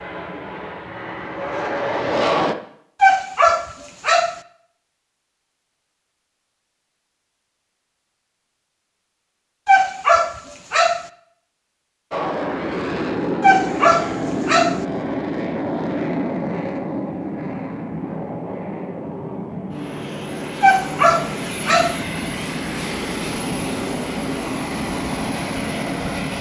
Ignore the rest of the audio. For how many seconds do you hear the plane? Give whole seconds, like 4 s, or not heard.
17 s.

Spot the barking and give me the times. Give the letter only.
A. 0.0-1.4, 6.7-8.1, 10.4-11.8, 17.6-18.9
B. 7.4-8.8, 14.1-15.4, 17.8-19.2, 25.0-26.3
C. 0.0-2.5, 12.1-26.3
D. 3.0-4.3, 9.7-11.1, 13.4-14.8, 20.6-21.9
D.